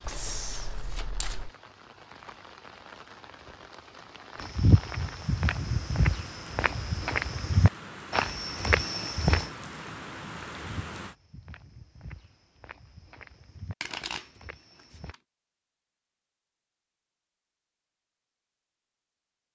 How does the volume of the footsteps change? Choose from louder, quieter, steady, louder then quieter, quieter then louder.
quieter.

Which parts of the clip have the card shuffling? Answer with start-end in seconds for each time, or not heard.
0.0-1.5, 13.8-15.2.